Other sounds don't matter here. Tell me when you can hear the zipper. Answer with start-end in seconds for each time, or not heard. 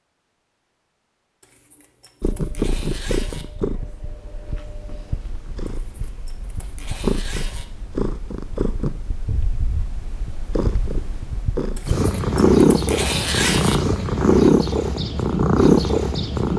1.4-3.5, 5.7-7.7, 11.8-13.8.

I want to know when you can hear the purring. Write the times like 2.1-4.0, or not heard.
2.2-16.5.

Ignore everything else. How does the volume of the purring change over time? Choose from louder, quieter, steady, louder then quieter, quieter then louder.
louder.